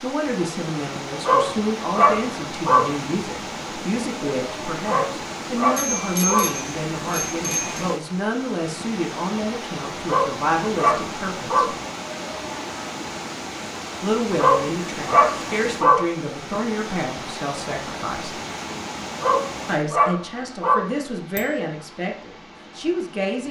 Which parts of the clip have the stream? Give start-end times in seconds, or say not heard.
0.0-23.4.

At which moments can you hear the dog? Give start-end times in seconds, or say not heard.
1.2-2.9, 4.8-6.5, 10.1-11.8, 14.3-16.1, 19.2-20.9.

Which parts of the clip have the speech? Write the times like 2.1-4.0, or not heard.
0.0-11.7, 14.0-18.4, 19.6-23.4.